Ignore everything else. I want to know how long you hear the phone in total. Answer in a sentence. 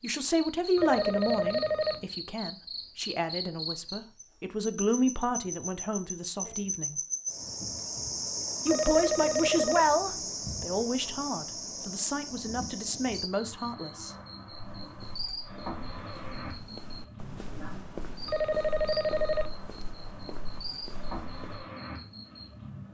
The phone can be heard for 4 seconds in total.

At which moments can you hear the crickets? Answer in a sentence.
You can hear the crickets from 0.2 to 22.8 s.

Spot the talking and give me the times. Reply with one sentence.
You can hear the talking from 0.0 to 7.0 s and from 8.7 to 14.2 s.